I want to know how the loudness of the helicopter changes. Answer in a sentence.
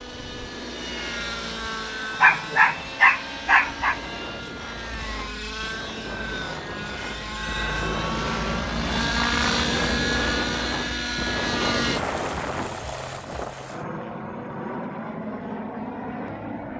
The volume of the helicopter goes up, then down.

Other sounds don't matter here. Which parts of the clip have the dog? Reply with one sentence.
You can hear the dog from 2.2 to 4.0 s.